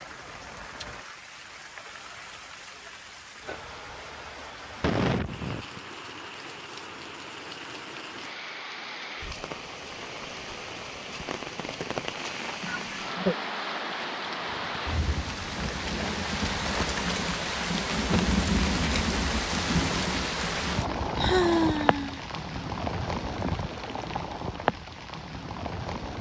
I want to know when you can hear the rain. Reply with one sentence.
The rain can be heard from 0.0 to 26.1 s.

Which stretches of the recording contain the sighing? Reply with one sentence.
The sighing can be heard from 4.8 to 5.8 s, from 12.6 to 13.3 s and from 20.9 to 22.2 s.